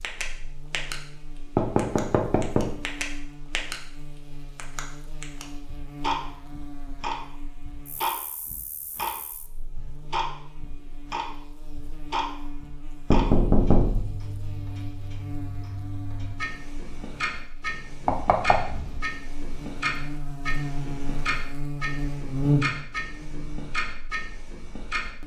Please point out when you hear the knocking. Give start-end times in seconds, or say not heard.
1.6-2.7, 13.1-14.1, 18.1-19.1.